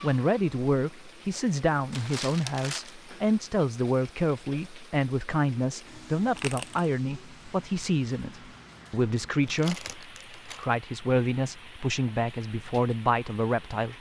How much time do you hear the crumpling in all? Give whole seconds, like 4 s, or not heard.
3 s.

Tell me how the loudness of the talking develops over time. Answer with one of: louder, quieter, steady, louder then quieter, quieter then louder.
steady.